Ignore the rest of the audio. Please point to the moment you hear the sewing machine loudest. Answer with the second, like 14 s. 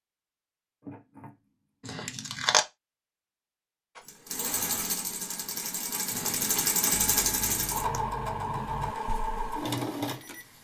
7 s.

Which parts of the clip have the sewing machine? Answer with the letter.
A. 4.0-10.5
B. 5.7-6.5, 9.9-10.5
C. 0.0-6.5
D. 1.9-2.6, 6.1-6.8
A.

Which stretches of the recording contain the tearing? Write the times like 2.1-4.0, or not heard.
1.9-2.6, 6.1-6.8.